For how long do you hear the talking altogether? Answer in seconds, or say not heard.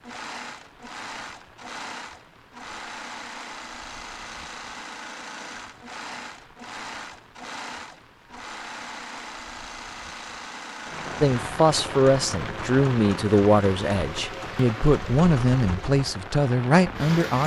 6 s.